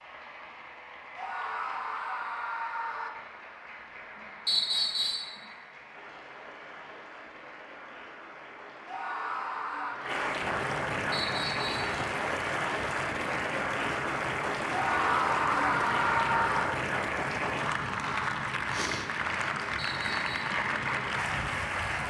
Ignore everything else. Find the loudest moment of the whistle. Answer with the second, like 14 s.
5 s.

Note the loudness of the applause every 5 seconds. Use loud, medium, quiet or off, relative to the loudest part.
quiet, quiet, loud, loud, loud.